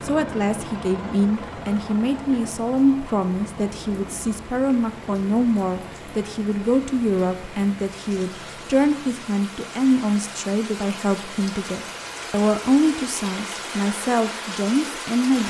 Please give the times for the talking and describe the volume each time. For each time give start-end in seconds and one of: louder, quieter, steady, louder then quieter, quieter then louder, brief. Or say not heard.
0.0-15.4 steady.